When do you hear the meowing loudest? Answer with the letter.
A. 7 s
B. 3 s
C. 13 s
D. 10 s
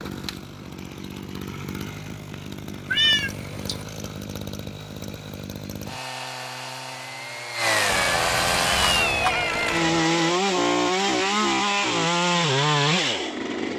B.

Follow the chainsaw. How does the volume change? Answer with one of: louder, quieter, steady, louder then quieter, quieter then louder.
louder.